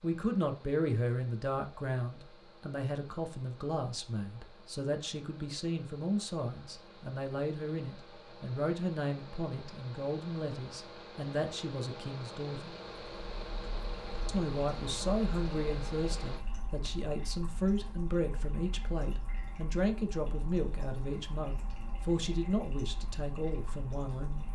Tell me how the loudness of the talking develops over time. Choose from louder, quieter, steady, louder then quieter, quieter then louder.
steady.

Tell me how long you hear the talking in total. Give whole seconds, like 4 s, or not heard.
23 s.